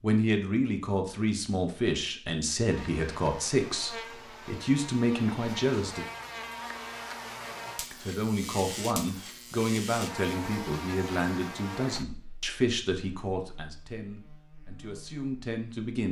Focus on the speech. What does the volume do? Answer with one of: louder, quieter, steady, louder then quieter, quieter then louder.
quieter.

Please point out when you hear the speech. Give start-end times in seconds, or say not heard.
0.0-6.0, 7.9-16.0.